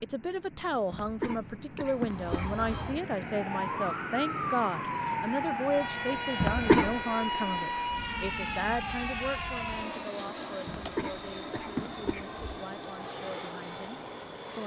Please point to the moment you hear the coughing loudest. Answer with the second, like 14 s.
7 s.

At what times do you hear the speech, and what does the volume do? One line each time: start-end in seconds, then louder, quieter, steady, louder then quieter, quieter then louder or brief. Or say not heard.
0.0-14.6 quieter.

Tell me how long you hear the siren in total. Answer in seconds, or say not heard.
8 s.